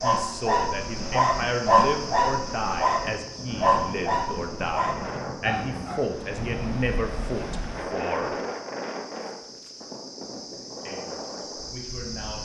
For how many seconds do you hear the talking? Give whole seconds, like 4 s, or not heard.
10 s.